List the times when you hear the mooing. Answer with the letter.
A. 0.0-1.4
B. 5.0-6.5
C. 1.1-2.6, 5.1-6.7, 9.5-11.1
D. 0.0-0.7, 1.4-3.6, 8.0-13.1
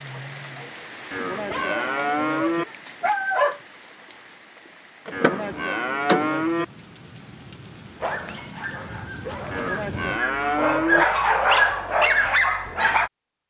C.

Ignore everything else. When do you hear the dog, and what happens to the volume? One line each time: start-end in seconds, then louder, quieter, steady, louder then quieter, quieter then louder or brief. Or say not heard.
0.0-0.7 brief
1.4-3.6 brief
8.0-13.1 louder.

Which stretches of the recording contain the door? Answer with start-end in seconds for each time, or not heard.
5.0-6.5.